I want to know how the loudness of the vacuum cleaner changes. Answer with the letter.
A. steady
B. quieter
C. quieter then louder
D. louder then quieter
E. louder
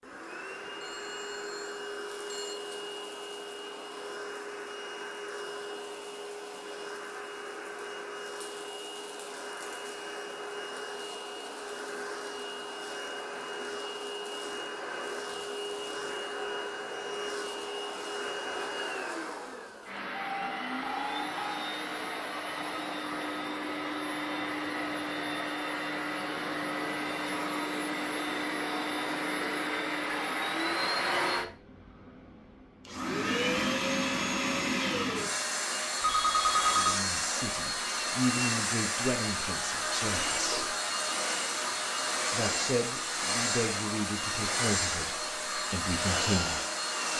E.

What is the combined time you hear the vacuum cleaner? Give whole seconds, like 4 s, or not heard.
47 s.